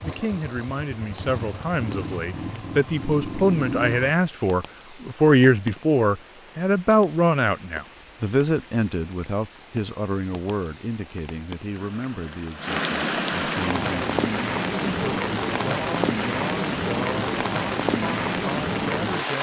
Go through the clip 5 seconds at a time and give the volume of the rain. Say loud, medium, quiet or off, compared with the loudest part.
quiet, quiet, loud, loud.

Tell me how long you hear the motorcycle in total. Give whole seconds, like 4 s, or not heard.
4 s.